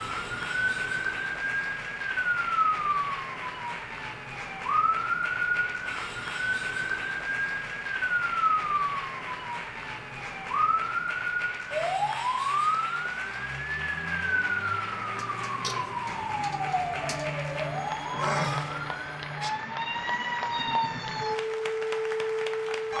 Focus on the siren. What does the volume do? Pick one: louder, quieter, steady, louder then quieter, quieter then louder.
steady.